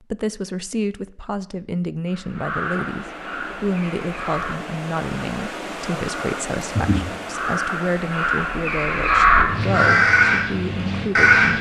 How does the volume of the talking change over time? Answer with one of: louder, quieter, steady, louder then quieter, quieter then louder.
steady.